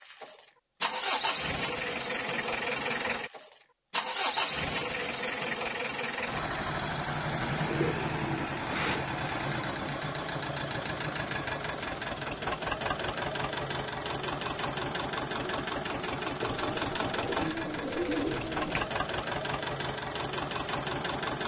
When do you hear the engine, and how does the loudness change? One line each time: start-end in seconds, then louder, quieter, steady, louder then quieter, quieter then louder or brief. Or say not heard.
0.0-21.4 steady.